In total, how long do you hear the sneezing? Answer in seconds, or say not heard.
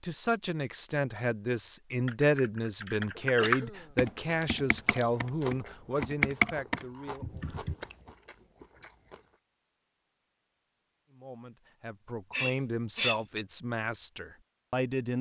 2 s.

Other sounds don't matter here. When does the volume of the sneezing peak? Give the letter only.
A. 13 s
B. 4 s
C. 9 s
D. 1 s
A.